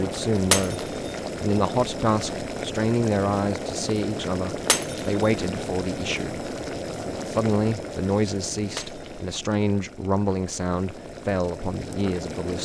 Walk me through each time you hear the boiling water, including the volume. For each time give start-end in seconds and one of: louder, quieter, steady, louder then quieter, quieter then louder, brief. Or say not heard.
0.0-12.6 quieter.